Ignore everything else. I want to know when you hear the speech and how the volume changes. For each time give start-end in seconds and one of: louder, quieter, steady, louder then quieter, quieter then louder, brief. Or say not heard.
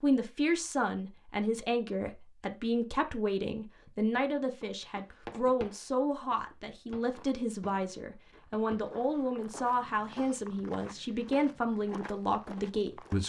0.0-13.2 steady.